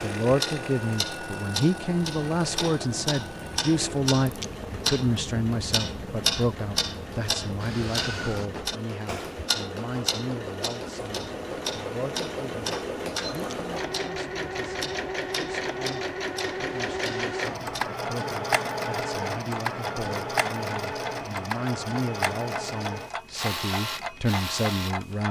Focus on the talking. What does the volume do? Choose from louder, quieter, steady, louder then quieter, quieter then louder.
quieter then louder.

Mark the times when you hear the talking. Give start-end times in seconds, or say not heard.
0.0-25.2.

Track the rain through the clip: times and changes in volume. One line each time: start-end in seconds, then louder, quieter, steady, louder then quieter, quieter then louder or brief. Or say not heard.
not heard.